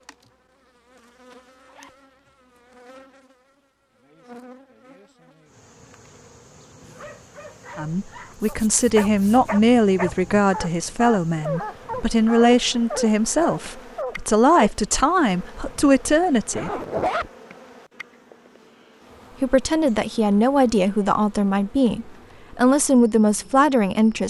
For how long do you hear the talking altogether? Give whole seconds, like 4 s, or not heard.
14 s.